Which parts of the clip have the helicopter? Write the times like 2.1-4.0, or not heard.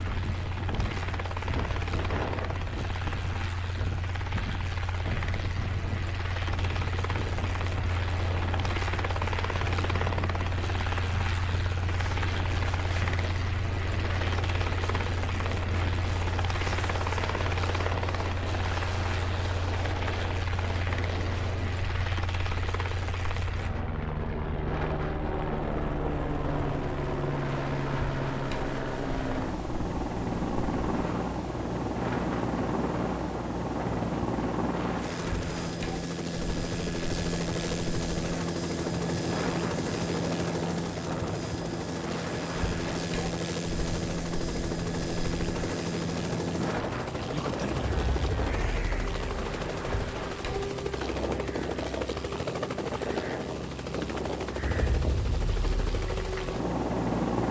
0.0-57.4.